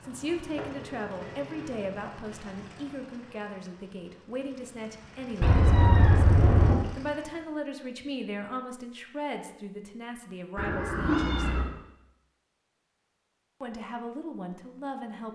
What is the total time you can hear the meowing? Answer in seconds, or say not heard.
4 s.